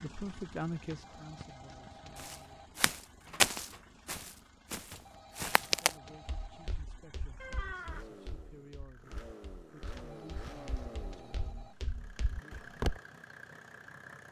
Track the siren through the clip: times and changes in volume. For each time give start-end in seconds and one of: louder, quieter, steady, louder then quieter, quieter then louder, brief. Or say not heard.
not heard.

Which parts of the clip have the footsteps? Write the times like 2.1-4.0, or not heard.
2.1-13.0.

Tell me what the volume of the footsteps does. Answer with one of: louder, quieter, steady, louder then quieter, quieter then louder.
quieter then louder.